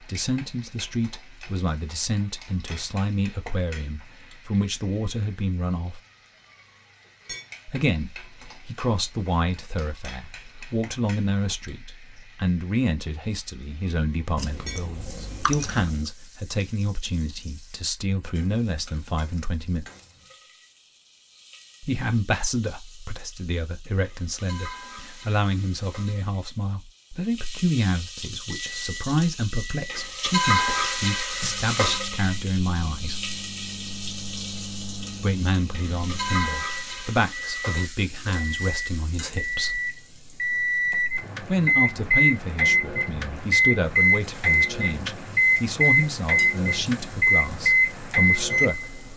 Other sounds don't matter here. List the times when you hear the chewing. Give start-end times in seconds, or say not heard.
14.3-16.1.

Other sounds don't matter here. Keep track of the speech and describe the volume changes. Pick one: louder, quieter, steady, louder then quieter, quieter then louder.
steady.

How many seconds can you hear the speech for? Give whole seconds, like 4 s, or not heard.
42 s.